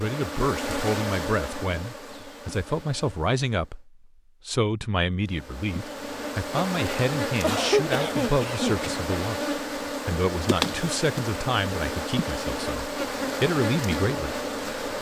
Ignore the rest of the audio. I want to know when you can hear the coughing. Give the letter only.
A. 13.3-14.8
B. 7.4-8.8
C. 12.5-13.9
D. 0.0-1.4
B.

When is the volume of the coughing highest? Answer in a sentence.
The volume of the coughing peaks at 8 seconds.